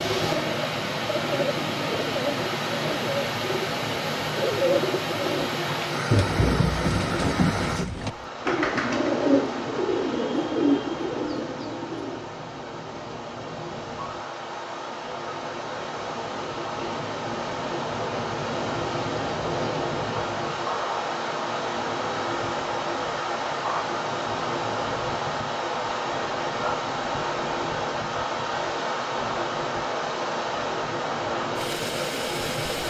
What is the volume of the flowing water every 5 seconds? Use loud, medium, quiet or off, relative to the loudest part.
loud, loud, medium, loud, loud, loud, loud.